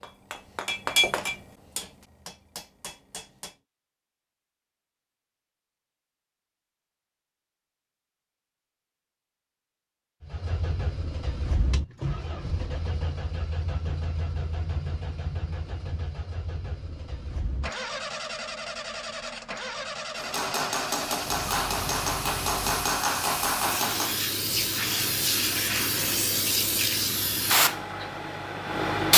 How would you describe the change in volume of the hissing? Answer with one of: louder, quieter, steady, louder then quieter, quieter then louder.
louder.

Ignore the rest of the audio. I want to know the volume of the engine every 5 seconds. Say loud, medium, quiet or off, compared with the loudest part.
off, off, loud, loud, loud, off.